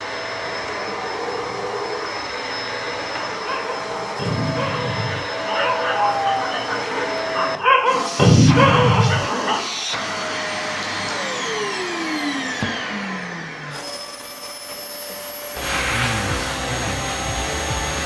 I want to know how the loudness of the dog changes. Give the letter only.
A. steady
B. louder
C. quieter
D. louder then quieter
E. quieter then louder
B.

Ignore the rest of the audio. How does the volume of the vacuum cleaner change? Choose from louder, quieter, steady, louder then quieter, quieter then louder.
steady.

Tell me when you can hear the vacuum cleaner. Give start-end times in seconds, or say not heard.
0.0-18.0.